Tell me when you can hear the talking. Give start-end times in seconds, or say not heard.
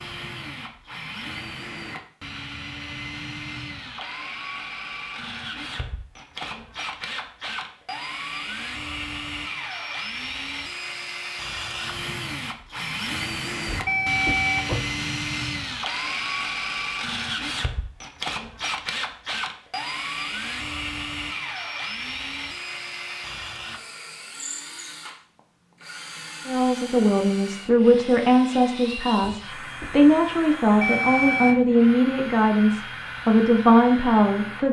26.4-34.6.